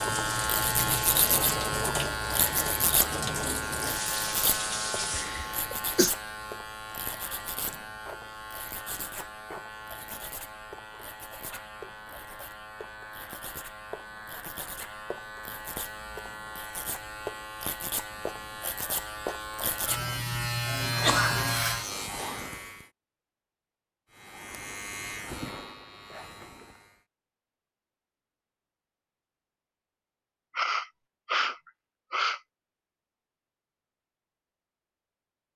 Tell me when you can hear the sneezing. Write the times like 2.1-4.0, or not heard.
5.1-6.1, 20.9-21.4, 30.6-32.4.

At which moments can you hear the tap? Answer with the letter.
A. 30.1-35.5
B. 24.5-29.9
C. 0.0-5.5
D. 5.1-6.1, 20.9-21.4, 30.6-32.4
C.